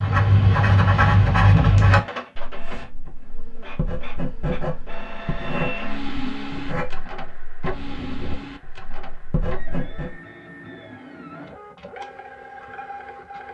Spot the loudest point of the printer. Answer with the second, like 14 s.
6 s.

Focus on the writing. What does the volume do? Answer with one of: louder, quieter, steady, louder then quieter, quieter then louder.
quieter.